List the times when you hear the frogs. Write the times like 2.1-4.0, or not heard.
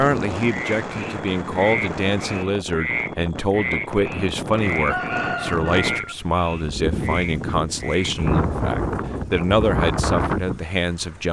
0.0-8.2.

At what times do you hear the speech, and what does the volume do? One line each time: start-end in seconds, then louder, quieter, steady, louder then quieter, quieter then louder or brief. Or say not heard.
0.0-11.2 steady.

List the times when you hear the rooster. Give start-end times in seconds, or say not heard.
4.7-6.2.